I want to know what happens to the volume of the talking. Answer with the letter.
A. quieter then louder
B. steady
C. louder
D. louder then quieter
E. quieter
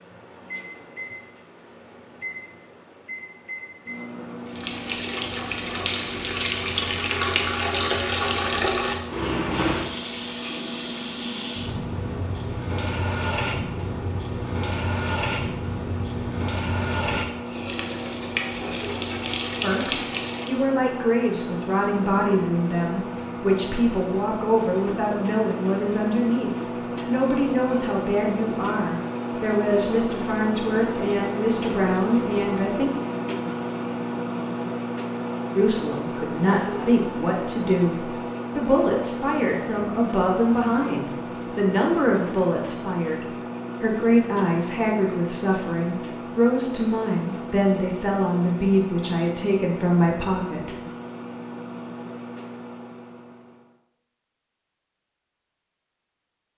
B.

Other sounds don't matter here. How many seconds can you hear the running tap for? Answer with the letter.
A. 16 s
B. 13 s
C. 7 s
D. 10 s
A.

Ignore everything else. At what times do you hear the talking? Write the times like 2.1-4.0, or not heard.
19.6-32.9, 35.5-50.7.